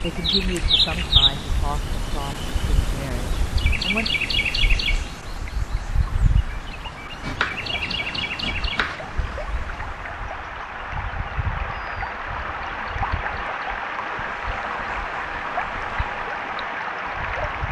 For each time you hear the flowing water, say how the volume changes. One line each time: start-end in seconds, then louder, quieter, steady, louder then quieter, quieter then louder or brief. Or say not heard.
0.0-17.6 louder.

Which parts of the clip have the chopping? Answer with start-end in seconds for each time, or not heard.
7.2-9.2.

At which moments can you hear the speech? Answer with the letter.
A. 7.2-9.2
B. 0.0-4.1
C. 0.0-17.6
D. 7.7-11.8
B.